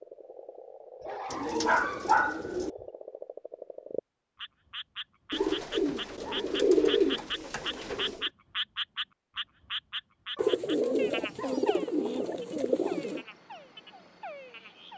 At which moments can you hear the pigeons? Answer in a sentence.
The pigeons can be heard from 1.3 to 2.7 s, from 5.3 to 8.3 s and from 10.3 to 13.2 s.